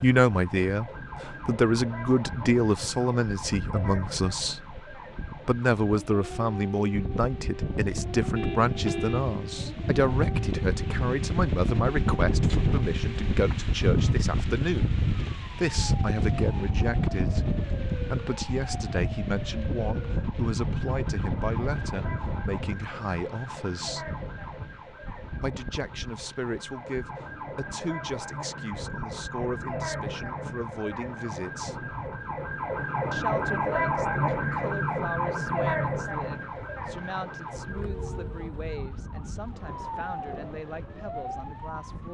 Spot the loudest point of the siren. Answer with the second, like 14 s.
34 s.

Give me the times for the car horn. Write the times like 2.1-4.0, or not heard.
8.3-9.3.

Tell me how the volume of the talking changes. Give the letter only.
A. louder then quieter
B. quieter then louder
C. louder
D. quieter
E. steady
D.